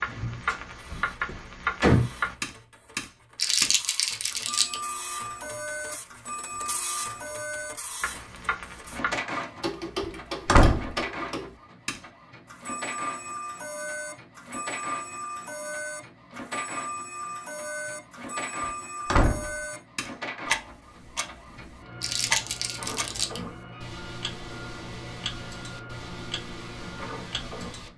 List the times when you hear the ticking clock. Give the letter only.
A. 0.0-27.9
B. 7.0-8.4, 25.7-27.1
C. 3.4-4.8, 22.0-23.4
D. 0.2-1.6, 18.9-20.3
A.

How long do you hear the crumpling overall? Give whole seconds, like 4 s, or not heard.
3 s.